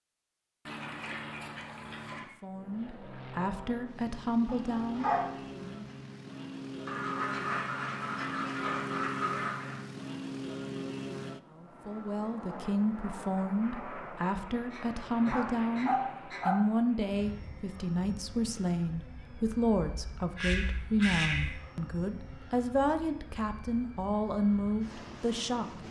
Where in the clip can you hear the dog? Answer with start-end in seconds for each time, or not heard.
4.5-5.5, 15.2-16.6.